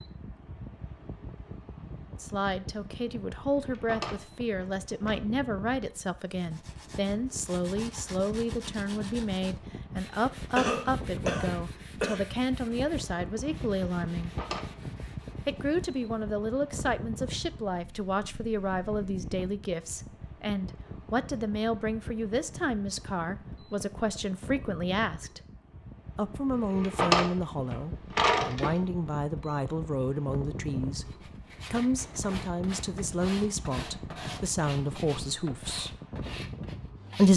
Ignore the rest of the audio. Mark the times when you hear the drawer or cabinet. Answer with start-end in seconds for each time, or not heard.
3.6-5.2, 14.2-14.7, 26.6-28.8.